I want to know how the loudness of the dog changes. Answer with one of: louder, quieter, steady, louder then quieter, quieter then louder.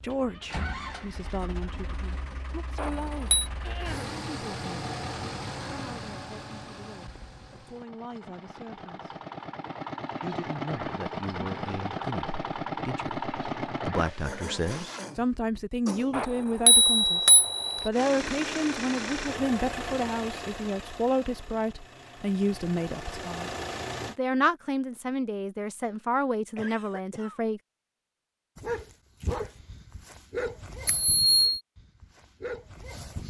quieter then louder.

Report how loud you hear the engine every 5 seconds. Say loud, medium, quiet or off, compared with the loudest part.
medium, medium, loud, loud, medium, off, off.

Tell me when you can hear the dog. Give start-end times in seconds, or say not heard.
28.6-33.2.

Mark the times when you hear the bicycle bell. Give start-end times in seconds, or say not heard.
2.8-3.5, 16.1-17.9, 30.9-31.6.